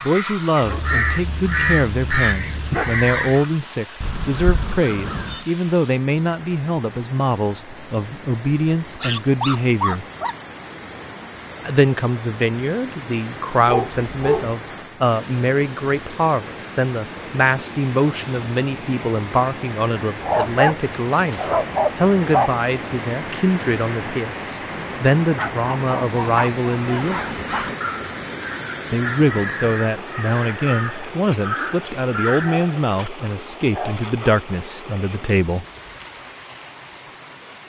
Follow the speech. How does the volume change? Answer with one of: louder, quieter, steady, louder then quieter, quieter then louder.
steady.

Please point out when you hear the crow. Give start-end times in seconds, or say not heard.
0.0-5.5, 26.9-32.8.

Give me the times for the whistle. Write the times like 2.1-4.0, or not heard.
not heard.